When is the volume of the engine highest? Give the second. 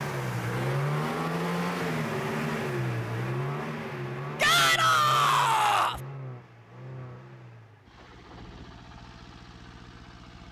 1 s.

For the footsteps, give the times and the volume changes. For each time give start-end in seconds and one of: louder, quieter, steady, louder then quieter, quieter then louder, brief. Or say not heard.
not heard.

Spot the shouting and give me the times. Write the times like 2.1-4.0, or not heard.
4.4-6.0.